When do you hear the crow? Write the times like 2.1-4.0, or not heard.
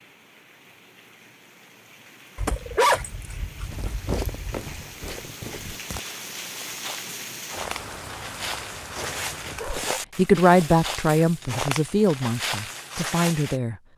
not heard.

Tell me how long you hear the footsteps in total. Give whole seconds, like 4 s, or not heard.
10 s.